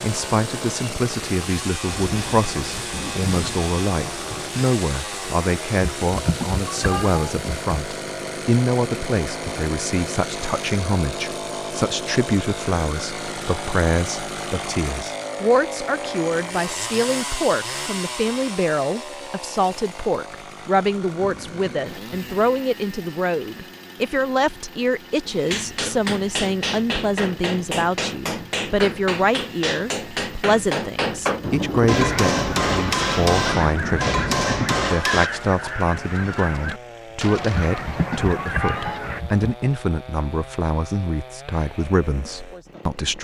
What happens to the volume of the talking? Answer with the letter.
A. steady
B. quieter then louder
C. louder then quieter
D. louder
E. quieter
A.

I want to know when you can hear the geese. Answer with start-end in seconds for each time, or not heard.
31.9-39.2.